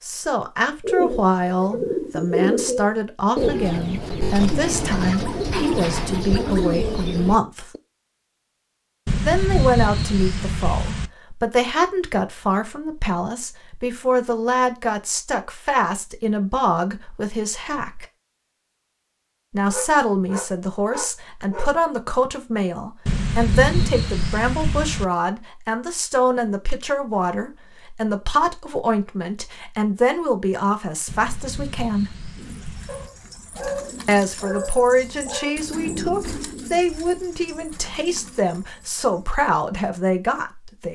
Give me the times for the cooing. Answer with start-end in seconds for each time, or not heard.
0.8-7.8, 32.4-39.3.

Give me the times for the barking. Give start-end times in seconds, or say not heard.
5.2-7.0, 19.6-21.8, 32.9-35.5.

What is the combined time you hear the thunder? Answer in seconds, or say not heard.
6 s.